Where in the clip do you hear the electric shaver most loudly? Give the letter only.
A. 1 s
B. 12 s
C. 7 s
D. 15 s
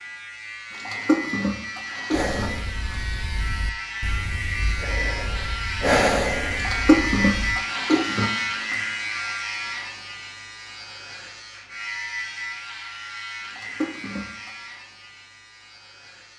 C.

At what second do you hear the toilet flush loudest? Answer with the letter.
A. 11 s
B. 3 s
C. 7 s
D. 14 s
C.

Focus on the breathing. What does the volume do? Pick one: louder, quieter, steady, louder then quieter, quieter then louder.
louder then quieter.